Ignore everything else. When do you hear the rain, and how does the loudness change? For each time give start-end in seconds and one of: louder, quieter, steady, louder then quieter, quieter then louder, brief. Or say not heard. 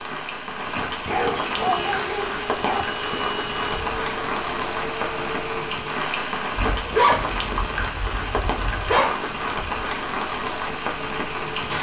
0.0-11.7 steady.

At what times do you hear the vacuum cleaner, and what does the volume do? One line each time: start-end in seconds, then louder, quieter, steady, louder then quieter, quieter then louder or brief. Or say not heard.
1.6-5.8 steady.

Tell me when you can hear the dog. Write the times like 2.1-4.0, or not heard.
1.1-2.9, 6.5-9.1.